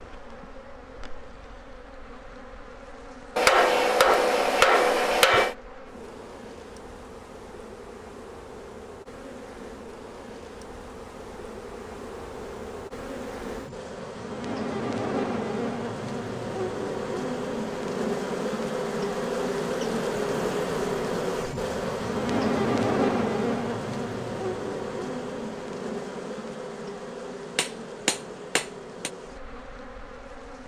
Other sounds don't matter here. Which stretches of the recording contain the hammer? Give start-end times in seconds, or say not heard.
3.4-5.5, 27.6-29.1.